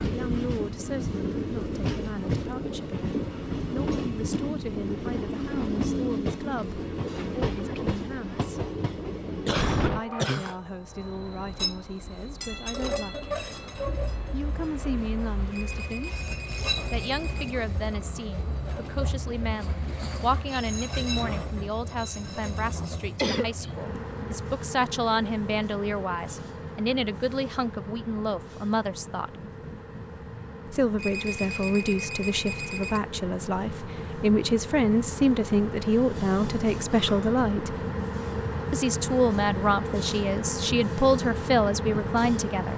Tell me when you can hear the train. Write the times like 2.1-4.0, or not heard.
0.0-42.7.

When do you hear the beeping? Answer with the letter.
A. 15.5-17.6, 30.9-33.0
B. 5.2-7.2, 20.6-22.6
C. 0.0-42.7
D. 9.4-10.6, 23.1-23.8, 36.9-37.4
A.